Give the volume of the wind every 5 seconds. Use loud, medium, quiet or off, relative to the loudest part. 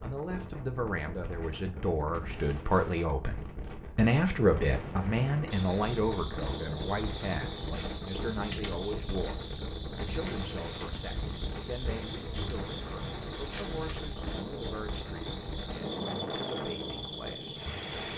medium, loud, loud, loud.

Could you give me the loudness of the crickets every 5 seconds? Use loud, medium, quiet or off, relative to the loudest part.
off, loud, loud, loud.